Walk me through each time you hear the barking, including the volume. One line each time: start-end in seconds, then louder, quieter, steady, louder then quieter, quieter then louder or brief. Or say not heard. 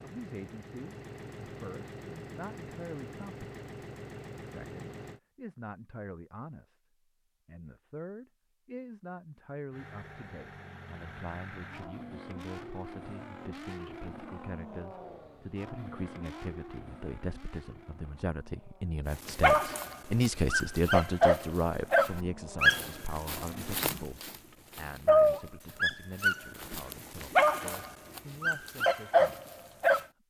19.1-30.1 steady.